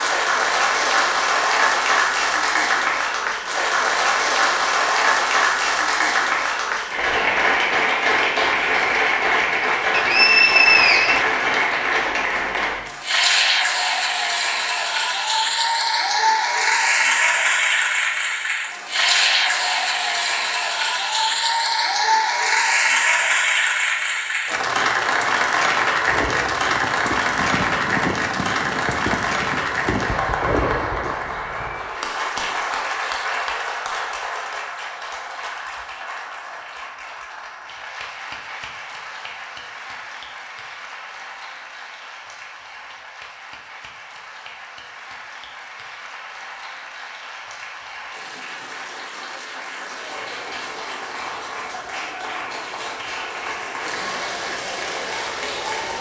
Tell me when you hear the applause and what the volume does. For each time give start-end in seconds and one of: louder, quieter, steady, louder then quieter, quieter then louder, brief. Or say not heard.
0.0-55.9 quieter.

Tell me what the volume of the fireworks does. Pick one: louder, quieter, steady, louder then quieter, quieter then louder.
louder.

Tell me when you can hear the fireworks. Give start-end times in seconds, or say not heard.
25.6-31.1.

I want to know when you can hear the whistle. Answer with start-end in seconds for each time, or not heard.
9.9-11.2.